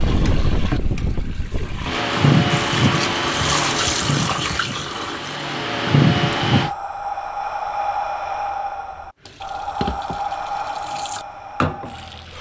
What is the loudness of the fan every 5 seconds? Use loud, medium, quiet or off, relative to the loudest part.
loud, loud, off.